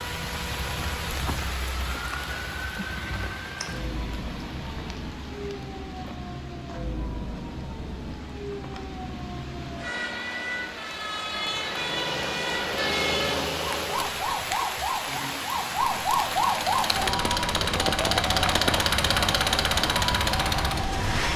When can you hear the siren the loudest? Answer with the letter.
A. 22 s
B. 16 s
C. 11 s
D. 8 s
B.